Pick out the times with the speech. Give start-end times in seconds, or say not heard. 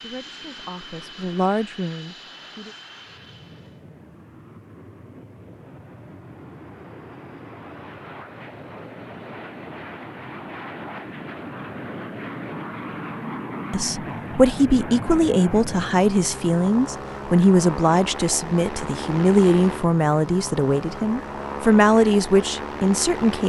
0.0-2.8, 13.7-23.4.